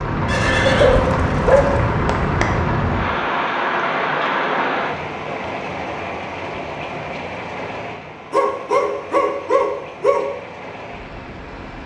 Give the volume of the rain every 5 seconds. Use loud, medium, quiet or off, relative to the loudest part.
loud, medium, quiet.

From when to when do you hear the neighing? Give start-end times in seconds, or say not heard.
0.2-1.8.